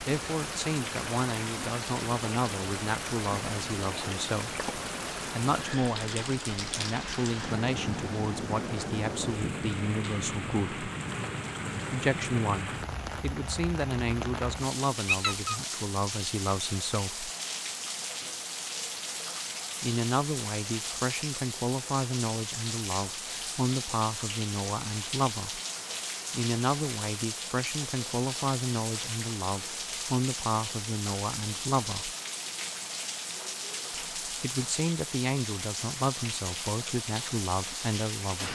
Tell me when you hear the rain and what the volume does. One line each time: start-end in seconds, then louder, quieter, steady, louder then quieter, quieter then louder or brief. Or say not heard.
0.0-38.5 steady.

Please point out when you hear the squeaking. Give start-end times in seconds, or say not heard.
15.1-15.6.